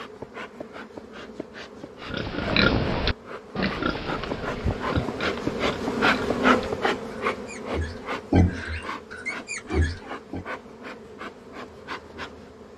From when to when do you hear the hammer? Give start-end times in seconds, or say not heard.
not heard.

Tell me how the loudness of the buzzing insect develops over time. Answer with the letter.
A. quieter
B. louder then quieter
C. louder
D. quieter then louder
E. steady
B.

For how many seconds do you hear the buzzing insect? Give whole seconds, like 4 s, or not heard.
13 s.